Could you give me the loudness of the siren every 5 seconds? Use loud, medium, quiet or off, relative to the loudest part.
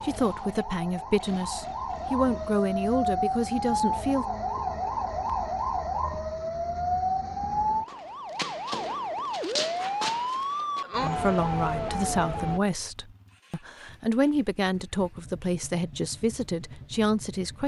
loud, loud, loud, off.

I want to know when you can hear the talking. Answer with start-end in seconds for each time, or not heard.
0.0-4.2, 11.0-17.6.